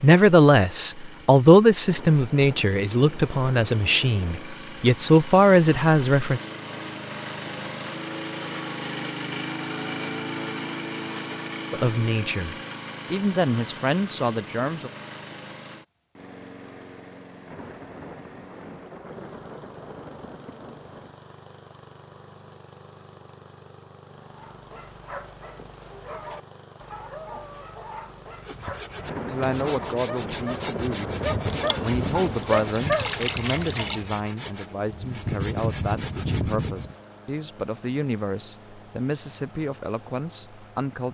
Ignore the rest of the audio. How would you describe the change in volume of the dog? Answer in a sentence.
The volume of the dog goes up.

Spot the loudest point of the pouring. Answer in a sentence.
The loudest moment of the pouring is at 33 seconds.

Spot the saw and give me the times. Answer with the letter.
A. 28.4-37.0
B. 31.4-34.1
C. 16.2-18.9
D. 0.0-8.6
A.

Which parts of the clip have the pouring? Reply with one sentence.
You can hear the pouring from 31.4 to 34.1 s.